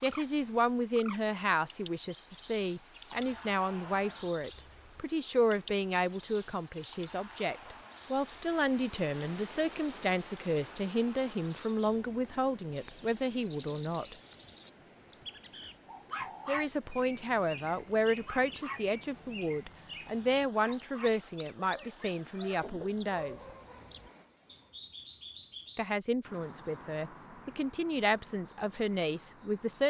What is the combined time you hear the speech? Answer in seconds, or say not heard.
25 s.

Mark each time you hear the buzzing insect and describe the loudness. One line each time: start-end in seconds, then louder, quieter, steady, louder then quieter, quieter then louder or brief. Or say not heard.
not heard.